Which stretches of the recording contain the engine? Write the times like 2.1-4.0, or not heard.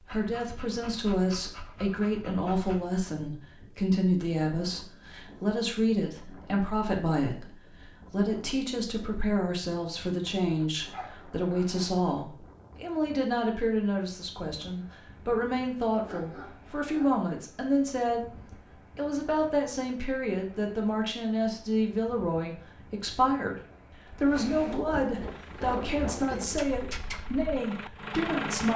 25.2-28.7.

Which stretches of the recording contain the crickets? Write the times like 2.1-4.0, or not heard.
not heard.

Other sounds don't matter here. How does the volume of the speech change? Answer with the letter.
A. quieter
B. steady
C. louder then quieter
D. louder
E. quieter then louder
B.